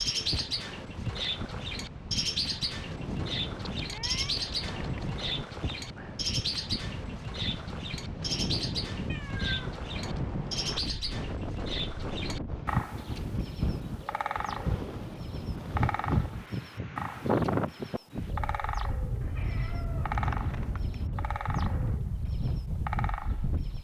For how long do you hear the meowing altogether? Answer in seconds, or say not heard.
4 s.